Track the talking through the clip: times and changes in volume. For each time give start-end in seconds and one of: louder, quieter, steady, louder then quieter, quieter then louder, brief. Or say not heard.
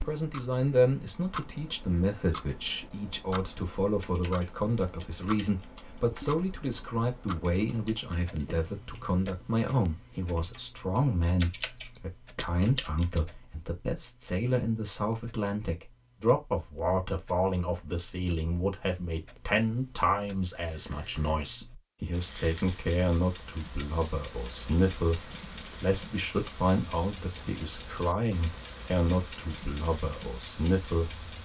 0.1-31.1 steady.